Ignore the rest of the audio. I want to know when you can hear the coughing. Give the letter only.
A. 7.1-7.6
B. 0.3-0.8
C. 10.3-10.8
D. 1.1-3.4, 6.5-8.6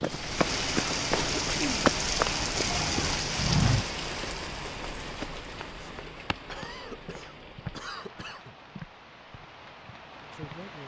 D.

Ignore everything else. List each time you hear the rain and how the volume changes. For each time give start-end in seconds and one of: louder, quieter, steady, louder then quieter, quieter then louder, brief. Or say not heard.
0.0-10.8 quieter.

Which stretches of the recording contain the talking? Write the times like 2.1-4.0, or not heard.
10.3-10.8.